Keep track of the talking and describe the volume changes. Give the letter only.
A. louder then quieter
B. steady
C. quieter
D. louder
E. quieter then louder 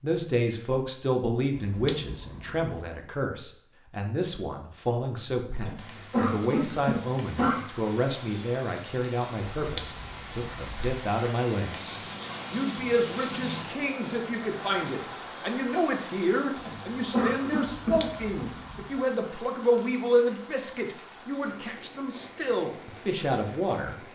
B.